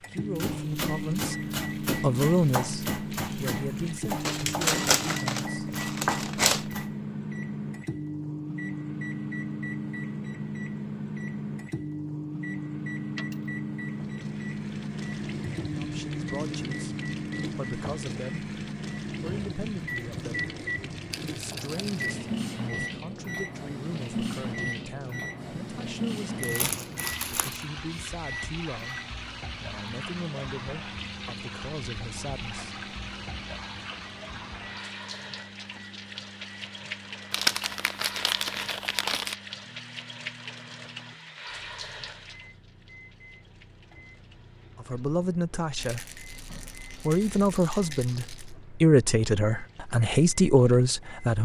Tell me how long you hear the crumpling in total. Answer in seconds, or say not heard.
6 s.